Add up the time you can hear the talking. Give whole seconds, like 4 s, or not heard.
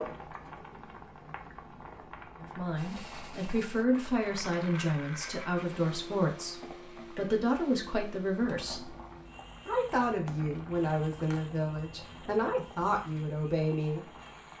11 s.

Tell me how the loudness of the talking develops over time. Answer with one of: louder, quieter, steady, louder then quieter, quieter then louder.
steady.